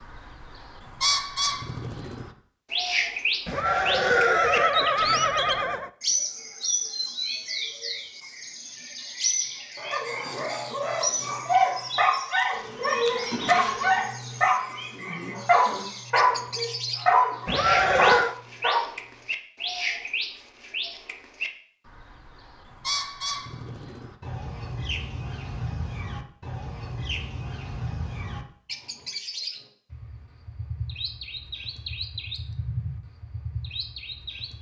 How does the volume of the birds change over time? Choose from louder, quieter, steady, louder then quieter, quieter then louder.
quieter.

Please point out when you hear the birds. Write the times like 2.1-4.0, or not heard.
0.0-34.5.